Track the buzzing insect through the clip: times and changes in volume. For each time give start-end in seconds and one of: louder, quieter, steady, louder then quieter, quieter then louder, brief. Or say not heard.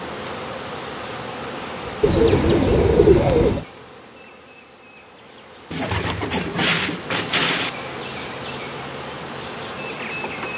0.0-10.5 quieter then louder.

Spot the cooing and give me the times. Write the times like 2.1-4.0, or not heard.
2.0-3.6, 5.7-7.7.